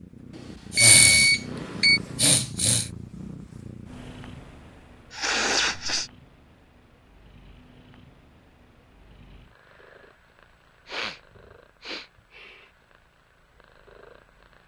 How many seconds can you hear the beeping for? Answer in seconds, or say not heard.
2 s.